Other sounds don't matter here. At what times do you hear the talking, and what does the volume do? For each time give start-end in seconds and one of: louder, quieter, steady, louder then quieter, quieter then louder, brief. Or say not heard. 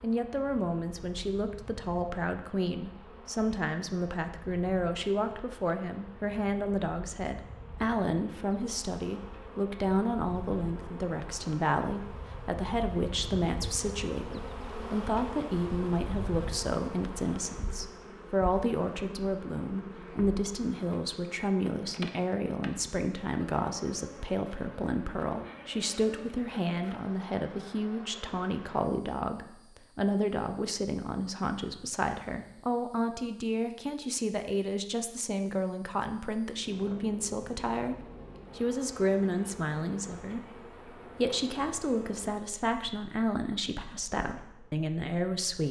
0.0-45.6 steady.